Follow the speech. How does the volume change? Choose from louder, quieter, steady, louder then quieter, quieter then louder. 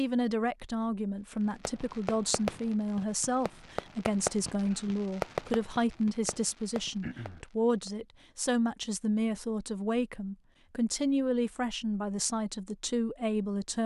steady.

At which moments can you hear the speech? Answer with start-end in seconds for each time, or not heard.
0.0-13.8.